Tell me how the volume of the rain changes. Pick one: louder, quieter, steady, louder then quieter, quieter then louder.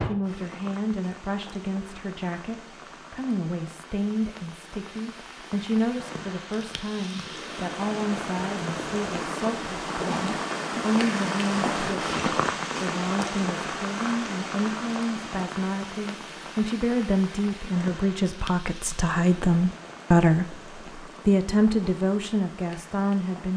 louder then quieter.